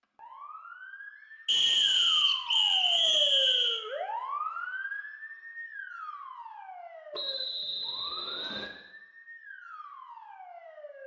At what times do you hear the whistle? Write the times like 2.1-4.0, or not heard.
1.4-3.9, 7.1-8.7.